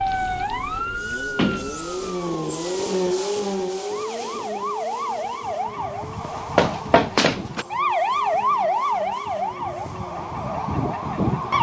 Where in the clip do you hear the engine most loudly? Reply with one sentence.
The volume of the engine peaks at 3 seconds.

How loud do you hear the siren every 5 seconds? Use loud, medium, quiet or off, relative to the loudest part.
medium, loud, loud.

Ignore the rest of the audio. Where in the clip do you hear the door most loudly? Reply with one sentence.
The volume of the door peaks at 7 seconds.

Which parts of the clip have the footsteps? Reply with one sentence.
The footsteps can't be heard in this clip.